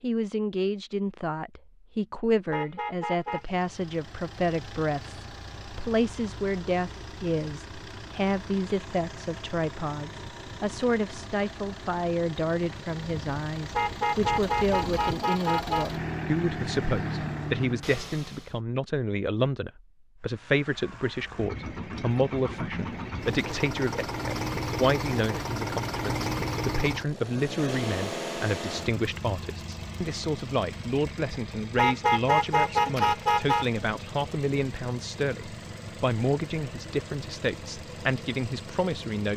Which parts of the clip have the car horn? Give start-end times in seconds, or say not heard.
2.5-3.5, 13.7-15.8, 31.8-33.6.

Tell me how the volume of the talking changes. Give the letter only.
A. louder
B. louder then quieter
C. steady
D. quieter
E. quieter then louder
C.